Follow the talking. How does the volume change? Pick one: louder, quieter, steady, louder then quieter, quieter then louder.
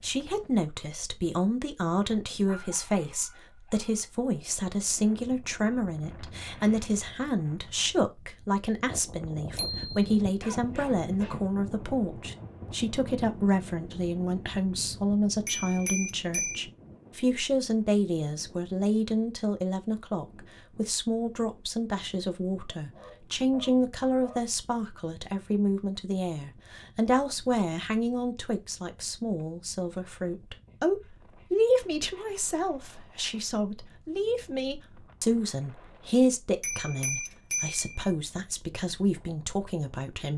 steady.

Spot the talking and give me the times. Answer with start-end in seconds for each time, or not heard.
0.0-40.3.